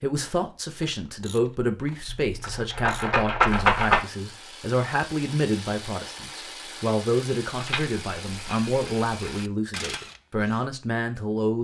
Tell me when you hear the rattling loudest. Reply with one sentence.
The loudest moment of the rattling is at 4 seconds.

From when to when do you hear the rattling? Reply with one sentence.
The rattling can be heard from 2.0 to 4.0 s and from 7.5 to 9.4 s.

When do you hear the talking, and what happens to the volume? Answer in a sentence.
The talking can be heard from 0.0 to 11.5 s, at a steady volume.